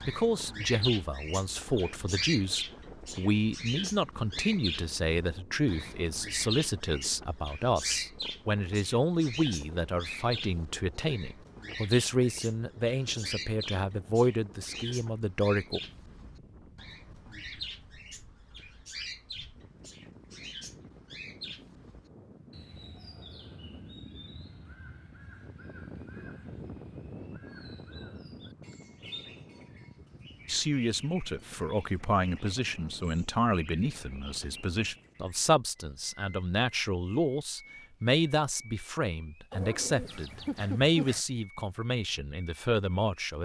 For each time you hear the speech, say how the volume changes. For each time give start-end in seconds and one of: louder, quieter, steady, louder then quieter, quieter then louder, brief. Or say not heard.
0.1-15.8 steady
30.4-43.3 steady.